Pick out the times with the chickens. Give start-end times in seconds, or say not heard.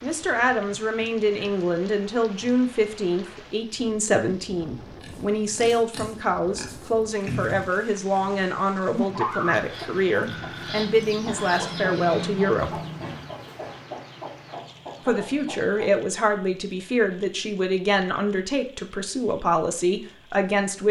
9.0-16.0.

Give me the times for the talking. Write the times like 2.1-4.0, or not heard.
0.0-12.8, 15.1-20.8.